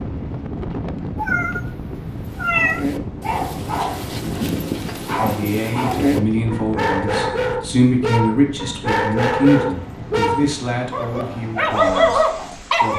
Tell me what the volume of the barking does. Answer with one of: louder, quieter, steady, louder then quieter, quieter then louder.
louder.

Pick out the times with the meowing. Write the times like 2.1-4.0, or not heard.
1.1-1.7, 2.4-2.9.